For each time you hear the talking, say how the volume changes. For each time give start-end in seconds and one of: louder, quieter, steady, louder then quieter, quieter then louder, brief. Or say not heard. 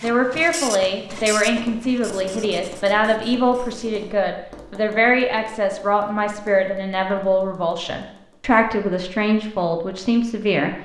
0.0-10.8 steady.